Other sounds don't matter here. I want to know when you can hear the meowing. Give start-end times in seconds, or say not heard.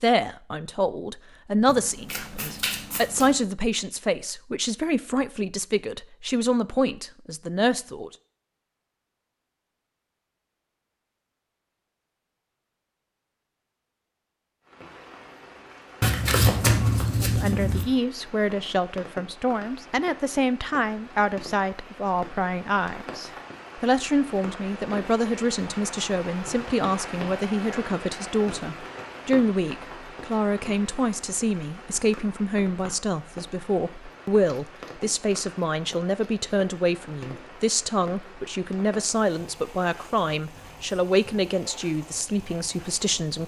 not heard.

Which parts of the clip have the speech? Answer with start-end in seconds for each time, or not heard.
0.0-8.1, 17.2-43.4.